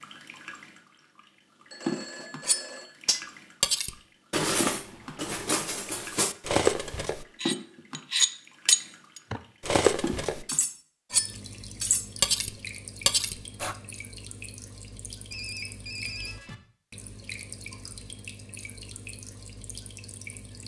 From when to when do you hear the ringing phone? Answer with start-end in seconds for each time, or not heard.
1.7-3.0, 15.3-16.4.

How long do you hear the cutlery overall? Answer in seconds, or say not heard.
11 s.